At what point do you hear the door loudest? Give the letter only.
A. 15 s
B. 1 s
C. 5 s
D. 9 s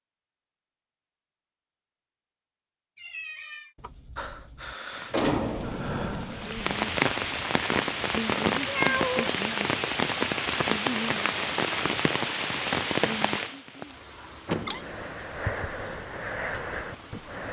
C.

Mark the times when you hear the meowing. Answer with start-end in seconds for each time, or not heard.
3.0-3.8, 8.7-9.3, 14.2-14.8.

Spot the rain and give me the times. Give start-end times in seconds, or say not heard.
4.9-17.4.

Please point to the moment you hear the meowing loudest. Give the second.
9 s.